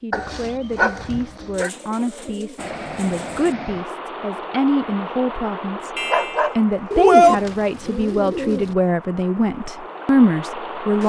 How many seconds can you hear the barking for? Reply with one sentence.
You can hear the barking for 3 seconds altogether.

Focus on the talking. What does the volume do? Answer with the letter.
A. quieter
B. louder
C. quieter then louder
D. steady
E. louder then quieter
B.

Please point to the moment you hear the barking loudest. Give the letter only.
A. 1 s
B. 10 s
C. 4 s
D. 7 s
D.